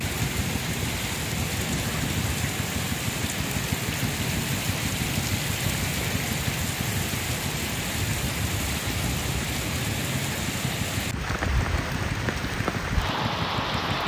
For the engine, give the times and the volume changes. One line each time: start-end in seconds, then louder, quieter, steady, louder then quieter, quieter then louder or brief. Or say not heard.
0.0-14.0 steady.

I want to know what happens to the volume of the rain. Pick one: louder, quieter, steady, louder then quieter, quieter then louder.
steady.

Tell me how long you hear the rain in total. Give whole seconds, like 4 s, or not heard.
14 s.